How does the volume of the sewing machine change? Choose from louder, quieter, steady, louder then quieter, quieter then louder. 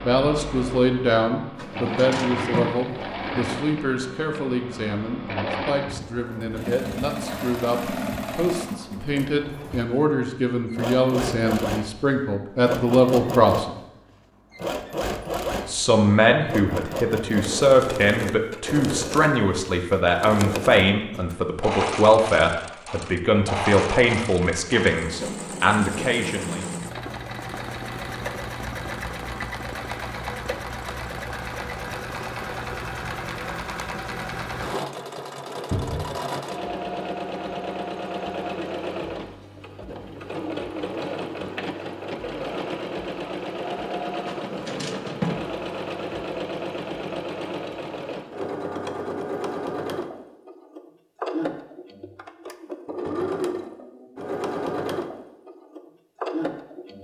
steady.